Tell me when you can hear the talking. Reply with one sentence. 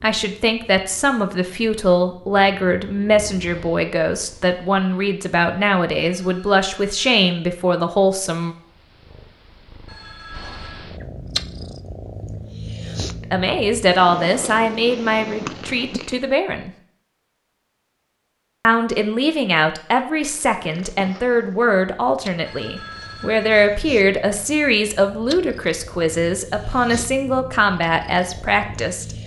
You can hear the talking from 0.0 to 8.6 s, from 13.3 to 16.7 s and from 18.6 to 29.1 s.